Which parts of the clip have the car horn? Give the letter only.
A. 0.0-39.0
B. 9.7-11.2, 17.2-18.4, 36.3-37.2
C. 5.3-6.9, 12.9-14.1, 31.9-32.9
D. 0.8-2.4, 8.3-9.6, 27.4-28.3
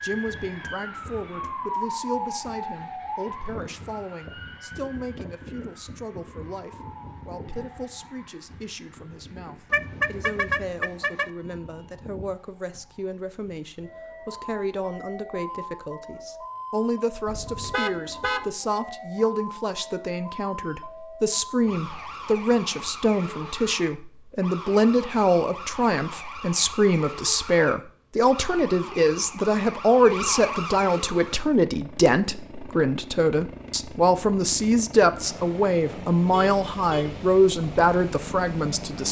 B.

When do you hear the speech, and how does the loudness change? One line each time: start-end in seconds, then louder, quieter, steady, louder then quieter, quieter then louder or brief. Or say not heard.
0.0-39.0 louder.